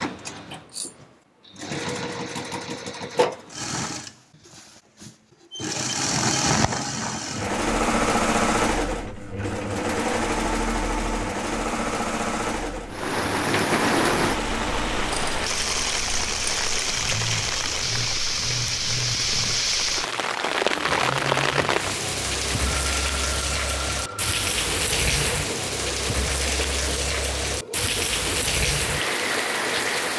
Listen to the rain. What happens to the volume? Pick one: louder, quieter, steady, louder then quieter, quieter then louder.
steady.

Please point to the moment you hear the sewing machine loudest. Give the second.
8 s.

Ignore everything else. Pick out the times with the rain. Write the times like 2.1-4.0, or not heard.
12.8-30.1.